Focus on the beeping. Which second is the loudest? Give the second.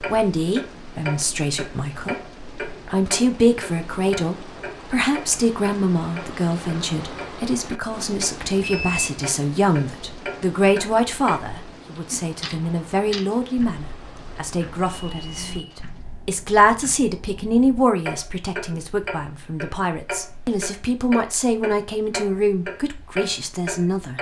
9 s.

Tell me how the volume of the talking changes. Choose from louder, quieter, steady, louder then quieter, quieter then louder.
steady.